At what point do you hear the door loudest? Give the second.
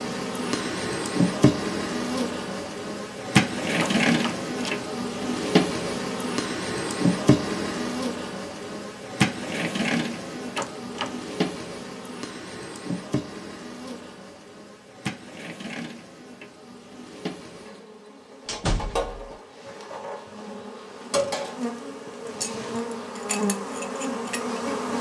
19 s.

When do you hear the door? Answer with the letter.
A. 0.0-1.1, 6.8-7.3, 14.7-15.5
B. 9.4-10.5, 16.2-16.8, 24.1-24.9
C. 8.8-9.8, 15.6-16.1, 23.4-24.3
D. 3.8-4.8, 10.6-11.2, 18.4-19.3
D.